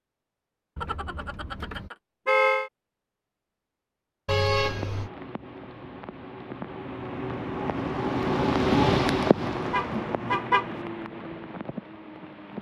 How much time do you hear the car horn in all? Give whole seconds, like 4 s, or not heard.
4 s.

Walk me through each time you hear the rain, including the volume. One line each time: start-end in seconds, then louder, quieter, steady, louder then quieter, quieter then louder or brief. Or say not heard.
4.6-12.5 louder then quieter.